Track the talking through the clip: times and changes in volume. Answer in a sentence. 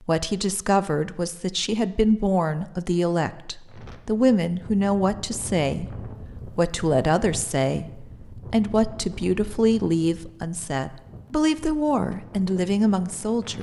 You can hear the talking from 0.0 to 13.5 s, at a steady volume.